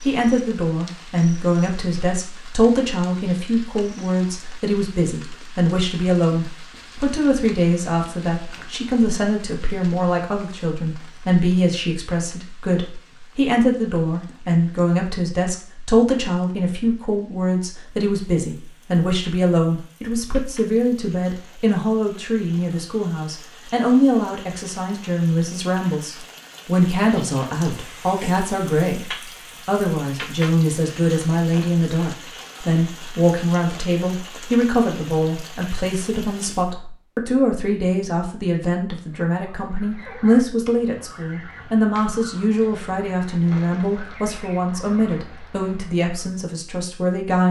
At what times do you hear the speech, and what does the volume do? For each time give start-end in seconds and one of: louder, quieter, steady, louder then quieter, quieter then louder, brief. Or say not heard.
0.0-47.4 steady.